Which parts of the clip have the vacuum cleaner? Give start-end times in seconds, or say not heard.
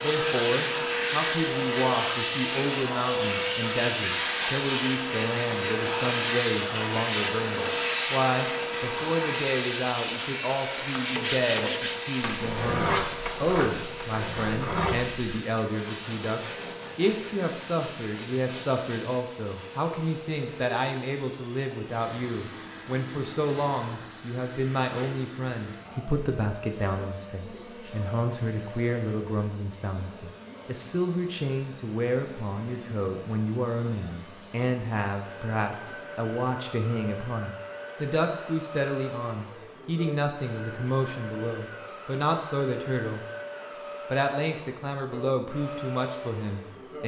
0.0-47.0.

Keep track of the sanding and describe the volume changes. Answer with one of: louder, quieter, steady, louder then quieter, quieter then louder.
quieter.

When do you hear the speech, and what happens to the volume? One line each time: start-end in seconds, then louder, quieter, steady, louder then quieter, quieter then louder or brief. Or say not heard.
0.0-43.2 steady
44.1-47.0 brief.